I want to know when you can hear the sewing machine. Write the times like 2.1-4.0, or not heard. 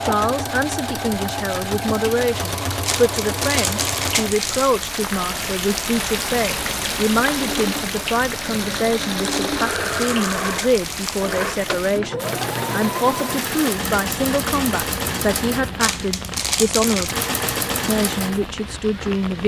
0.0-19.3.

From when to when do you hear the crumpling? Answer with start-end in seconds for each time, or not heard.
2.9-4.7, 9.2-11.2, 15.8-17.1.